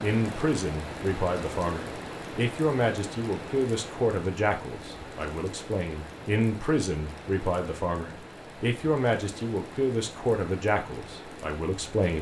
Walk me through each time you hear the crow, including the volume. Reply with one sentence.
The crow can't be heard in this clip.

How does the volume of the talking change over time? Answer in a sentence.
The volume of the talking stays about the same.